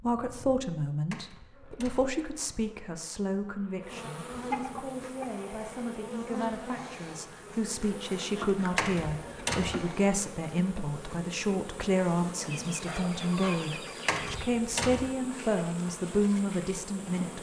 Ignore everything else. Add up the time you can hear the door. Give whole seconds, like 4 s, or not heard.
3 s.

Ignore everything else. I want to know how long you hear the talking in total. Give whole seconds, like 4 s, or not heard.
17 s.